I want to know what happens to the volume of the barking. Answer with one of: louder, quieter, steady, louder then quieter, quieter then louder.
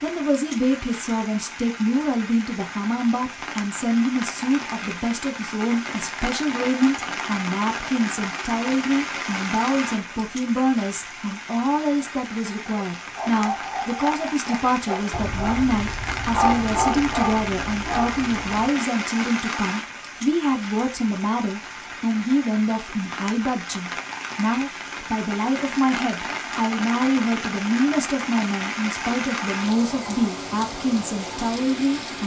louder then quieter.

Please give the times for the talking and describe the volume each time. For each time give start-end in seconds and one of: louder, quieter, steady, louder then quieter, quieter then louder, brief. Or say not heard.
0.0-32.2 steady.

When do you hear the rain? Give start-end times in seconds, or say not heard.
0.0-32.2.